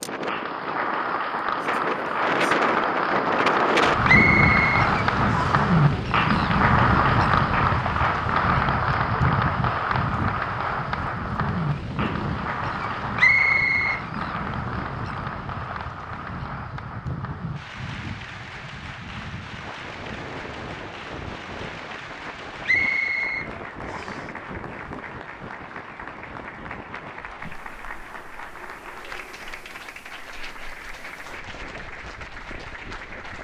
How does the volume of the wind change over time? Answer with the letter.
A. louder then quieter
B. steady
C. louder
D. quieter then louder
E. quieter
E.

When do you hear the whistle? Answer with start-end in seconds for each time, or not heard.
4.0-5.7, 13.2-14.0, 22.6-24.2.